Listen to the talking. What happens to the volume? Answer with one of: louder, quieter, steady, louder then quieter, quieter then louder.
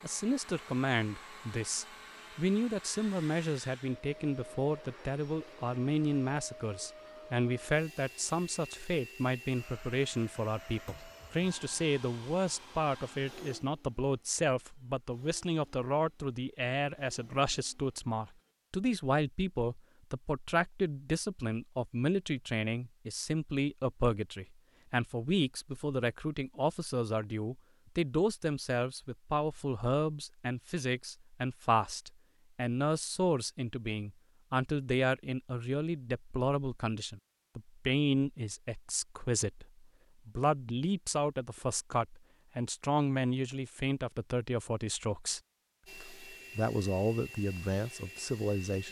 steady.